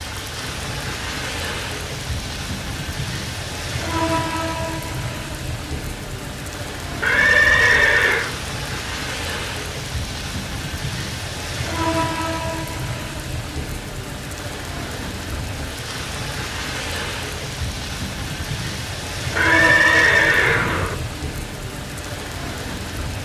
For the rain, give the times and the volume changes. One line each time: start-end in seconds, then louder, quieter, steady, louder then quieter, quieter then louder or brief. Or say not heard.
0.0-23.2 steady.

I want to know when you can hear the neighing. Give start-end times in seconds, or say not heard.
7.0-8.3, 19.4-20.9.